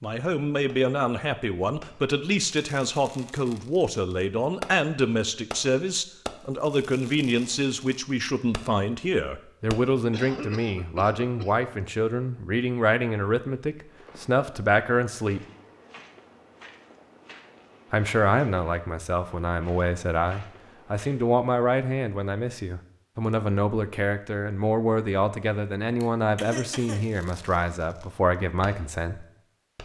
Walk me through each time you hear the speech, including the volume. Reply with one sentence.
The speech can be heard from 0.0 to 15.4 s, at a steady volume; and from 17.9 to 29.2 s, at a steady volume.